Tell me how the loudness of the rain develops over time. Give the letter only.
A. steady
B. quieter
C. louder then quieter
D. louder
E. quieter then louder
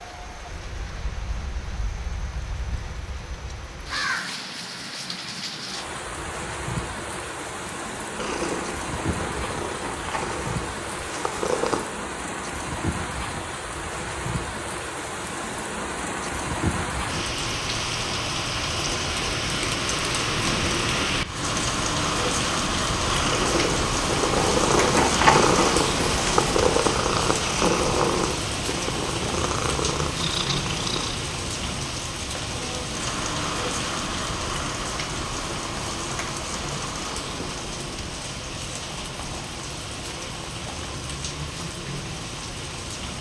C.